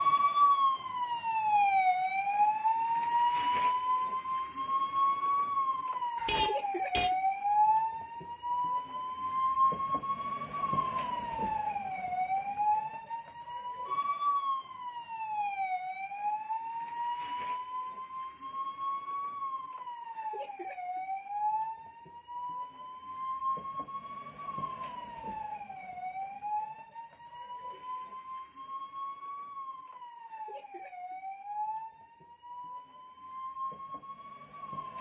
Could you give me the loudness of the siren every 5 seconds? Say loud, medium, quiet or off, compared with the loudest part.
loud, loud, medium, medium, medium, quiet, quiet.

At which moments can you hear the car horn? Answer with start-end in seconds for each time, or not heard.
6.2-7.1.